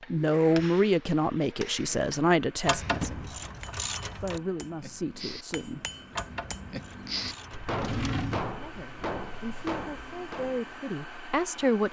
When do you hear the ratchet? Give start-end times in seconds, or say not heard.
2.6-4.4, 6.1-7.8.